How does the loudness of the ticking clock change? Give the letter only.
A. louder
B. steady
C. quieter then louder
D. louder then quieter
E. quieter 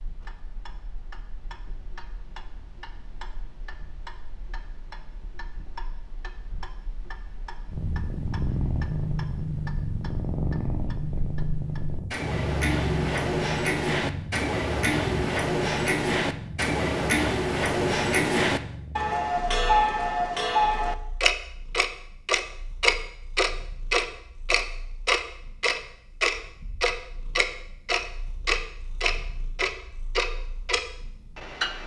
A.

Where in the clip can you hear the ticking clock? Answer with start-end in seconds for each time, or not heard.
0.0-31.8.